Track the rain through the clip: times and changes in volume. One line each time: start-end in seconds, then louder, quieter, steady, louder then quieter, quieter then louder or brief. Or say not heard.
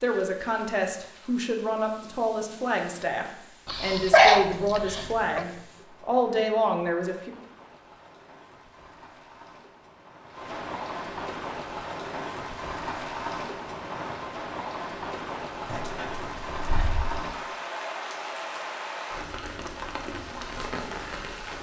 0.0-21.5 louder.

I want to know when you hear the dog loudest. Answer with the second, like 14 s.
4 s.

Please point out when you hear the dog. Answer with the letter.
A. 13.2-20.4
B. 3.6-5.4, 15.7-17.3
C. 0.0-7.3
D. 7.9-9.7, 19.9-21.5
B.